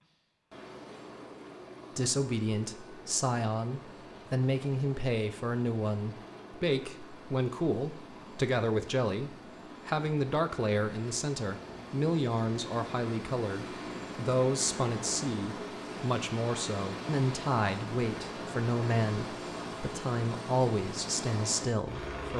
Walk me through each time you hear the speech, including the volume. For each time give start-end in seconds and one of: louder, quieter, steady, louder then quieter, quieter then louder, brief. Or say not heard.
1.9-22.3 steady.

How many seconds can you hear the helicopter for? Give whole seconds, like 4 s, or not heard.
22 s.